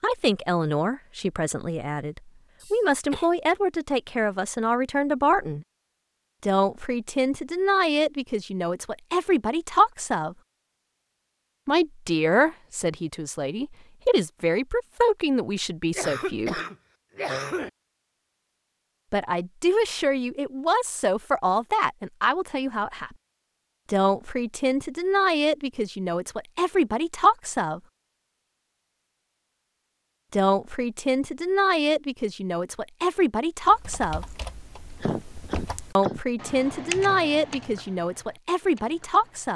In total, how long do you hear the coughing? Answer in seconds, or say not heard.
4 s.